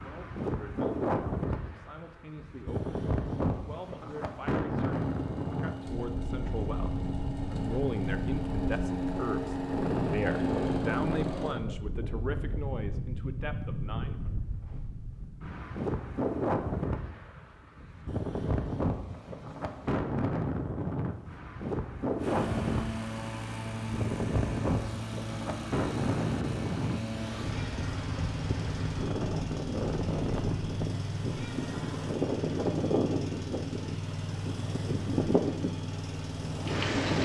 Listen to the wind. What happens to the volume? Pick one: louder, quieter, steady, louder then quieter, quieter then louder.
steady.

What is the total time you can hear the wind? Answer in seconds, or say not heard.
37 s.